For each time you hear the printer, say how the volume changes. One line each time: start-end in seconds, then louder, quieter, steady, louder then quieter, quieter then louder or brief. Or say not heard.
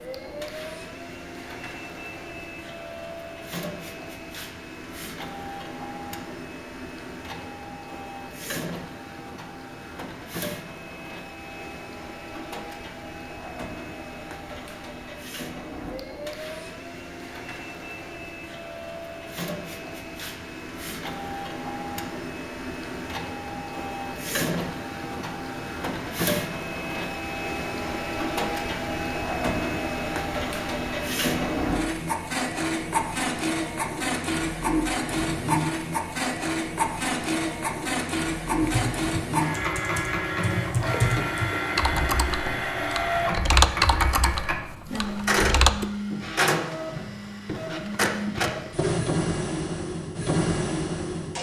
0.0-51.3 louder.